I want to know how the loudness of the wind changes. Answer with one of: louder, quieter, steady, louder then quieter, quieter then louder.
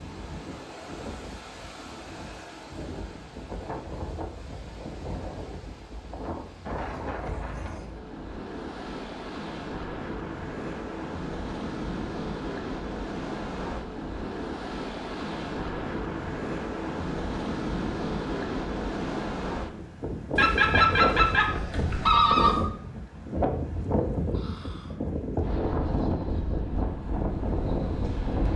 louder.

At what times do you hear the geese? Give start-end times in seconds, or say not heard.
20.4-22.7.